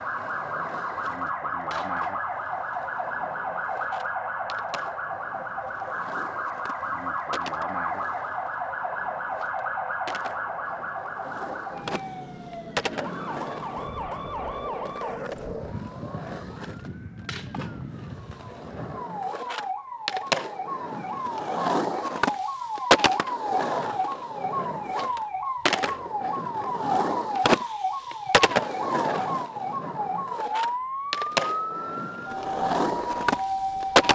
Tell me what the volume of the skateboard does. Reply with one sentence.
The volume of the skateboard goes up.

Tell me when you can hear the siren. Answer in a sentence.
You can hear the siren from 0.0 to 34.1 s.